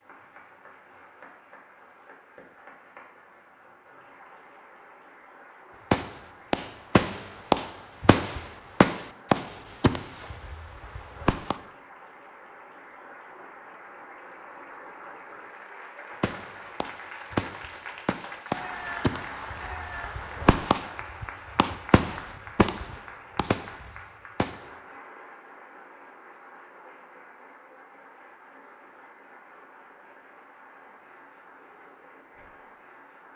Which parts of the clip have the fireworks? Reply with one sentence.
You can hear the fireworks from 5.9 to 11.6 s and from 16.2 to 24.6 s.